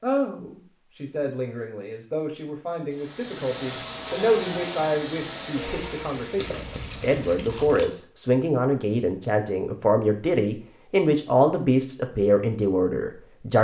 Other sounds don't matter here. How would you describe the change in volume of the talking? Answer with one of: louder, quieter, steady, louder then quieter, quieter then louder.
louder.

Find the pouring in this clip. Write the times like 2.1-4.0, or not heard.
6.3-7.8.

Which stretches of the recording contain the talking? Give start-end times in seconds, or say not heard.
0.0-13.5.